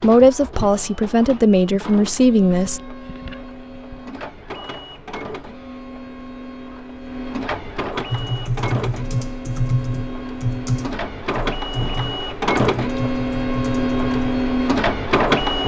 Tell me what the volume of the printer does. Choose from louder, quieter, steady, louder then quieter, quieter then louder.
louder.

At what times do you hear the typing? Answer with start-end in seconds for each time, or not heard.
8.1-14.4.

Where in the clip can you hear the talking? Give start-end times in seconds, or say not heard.
0.0-2.8.